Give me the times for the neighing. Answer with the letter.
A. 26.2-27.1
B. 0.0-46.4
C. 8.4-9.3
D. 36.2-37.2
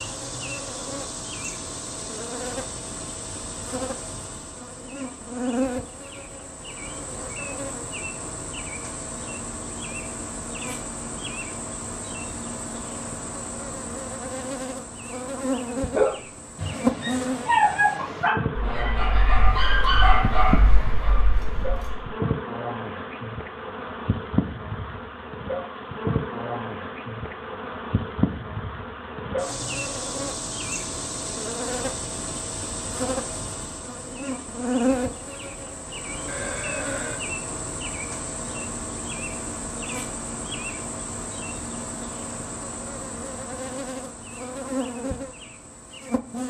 D.